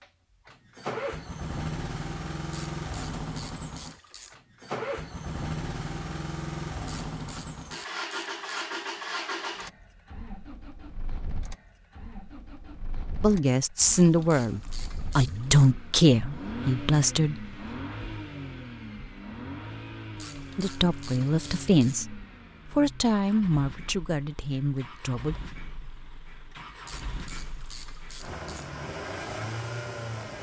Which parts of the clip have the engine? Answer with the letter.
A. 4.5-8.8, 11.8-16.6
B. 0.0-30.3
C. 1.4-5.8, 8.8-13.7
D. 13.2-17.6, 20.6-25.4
B.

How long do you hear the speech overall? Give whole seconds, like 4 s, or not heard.
9 s.